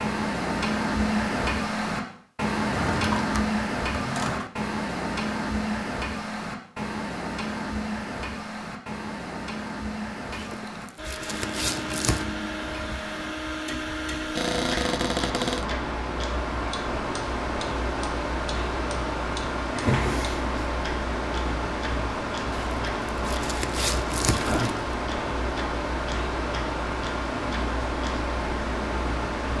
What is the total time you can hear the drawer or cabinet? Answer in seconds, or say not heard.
4 s.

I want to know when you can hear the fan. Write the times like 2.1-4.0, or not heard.
10.9-29.5.